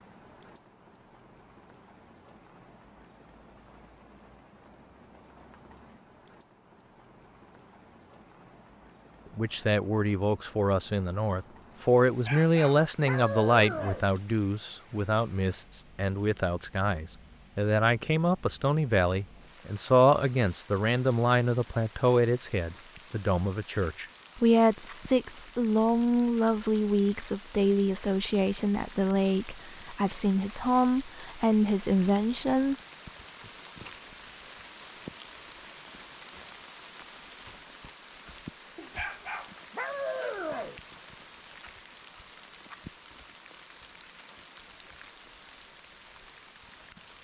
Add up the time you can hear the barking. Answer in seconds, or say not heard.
4 s.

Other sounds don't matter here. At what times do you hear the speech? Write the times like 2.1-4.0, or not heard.
9.3-32.8.